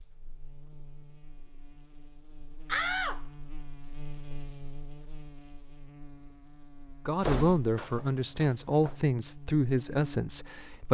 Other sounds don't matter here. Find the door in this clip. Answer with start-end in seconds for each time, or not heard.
2.6-3.4, 7.2-8.9.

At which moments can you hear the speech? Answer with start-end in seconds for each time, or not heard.
7.0-10.9.